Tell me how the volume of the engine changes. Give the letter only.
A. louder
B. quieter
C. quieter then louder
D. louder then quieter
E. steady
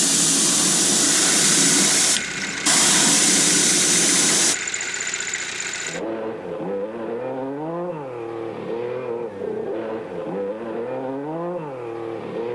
E.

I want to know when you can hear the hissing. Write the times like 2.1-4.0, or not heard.
0.0-4.5.